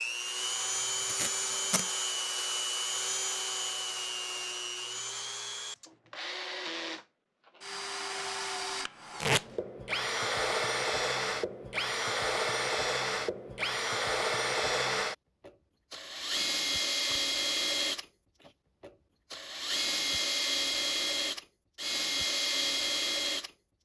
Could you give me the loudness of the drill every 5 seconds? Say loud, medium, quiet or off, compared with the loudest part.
loud, medium, loud, loud, loud.